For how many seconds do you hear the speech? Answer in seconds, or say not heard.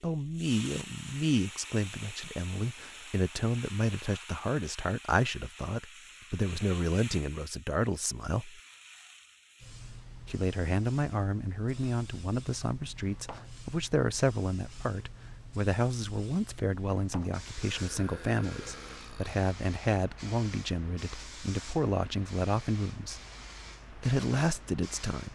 23 s.